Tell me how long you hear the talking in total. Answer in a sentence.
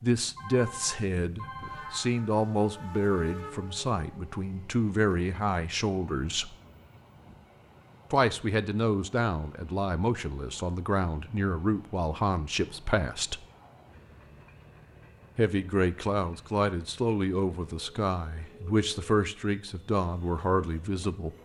You can hear the talking for 18 seconds altogether.